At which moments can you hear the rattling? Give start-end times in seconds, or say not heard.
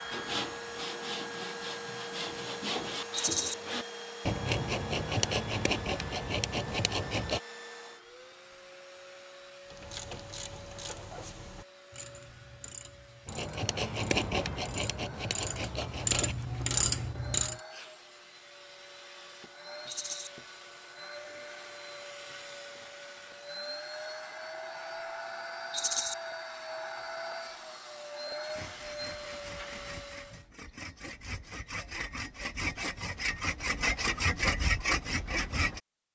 3.1-3.5, 19.9-20.3, 25.7-26.1.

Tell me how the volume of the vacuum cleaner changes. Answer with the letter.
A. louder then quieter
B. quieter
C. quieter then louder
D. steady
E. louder
C.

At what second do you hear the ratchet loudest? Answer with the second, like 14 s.
17 s.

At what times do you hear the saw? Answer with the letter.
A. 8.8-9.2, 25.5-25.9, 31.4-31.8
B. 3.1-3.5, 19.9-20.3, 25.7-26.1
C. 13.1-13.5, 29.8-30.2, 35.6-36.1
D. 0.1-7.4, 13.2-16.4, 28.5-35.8
D.